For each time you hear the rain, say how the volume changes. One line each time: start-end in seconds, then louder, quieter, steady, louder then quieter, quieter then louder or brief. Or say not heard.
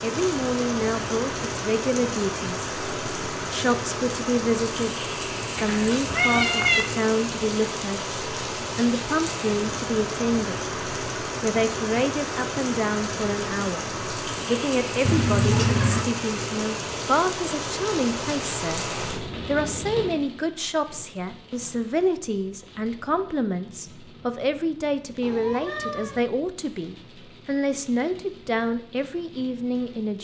0.0-30.1 quieter.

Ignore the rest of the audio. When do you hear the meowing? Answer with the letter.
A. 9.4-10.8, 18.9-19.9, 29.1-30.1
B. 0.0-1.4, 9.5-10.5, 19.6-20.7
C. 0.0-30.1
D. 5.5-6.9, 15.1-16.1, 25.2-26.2
D.